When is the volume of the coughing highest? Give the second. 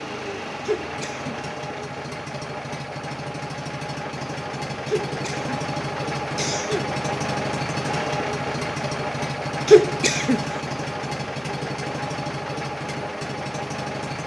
10 s.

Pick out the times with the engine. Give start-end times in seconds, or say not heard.
0.0-14.2.